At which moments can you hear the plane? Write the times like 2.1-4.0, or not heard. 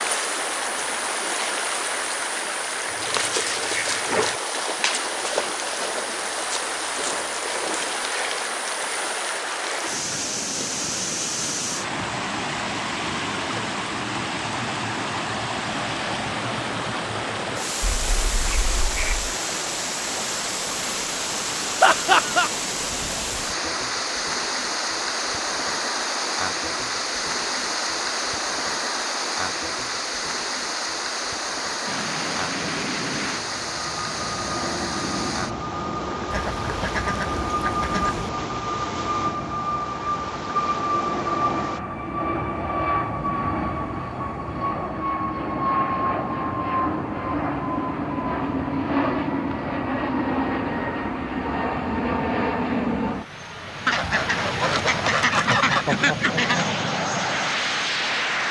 31.9-58.4.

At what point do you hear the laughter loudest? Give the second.
22 s.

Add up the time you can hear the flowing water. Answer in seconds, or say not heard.
42 s.